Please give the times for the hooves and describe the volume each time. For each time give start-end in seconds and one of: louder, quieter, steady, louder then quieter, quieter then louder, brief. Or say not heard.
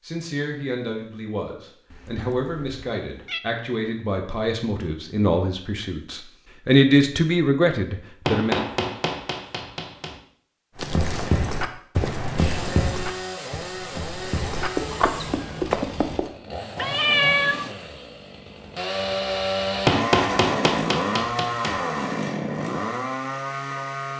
10.8-16.3 quieter then louder.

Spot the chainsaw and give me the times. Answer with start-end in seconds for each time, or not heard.
12.3-24.1.